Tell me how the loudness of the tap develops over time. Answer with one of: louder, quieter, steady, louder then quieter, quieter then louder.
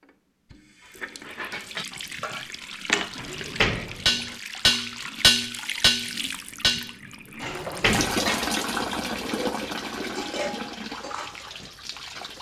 louder then quieter.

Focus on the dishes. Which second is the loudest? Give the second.
5 s.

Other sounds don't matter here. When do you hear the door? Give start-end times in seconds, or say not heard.
3.1-4.3, 7.4-8.3.